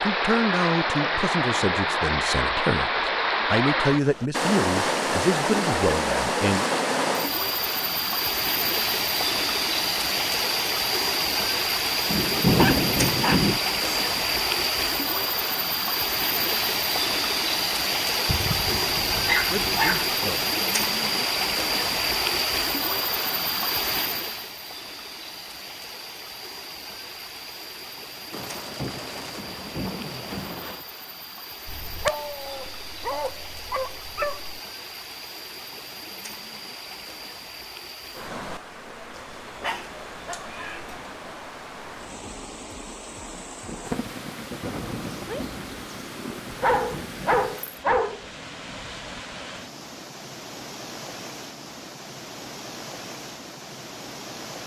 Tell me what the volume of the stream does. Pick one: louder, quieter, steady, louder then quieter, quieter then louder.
quieter.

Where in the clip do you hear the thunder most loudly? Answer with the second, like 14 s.
13 s.